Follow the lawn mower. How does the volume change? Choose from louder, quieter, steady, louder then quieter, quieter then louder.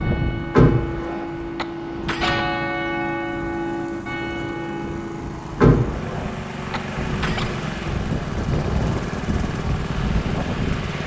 louder.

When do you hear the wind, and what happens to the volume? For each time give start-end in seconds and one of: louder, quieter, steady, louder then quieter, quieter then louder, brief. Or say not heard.
0.0-11.0 louder.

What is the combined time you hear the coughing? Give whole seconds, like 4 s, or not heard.
2 s.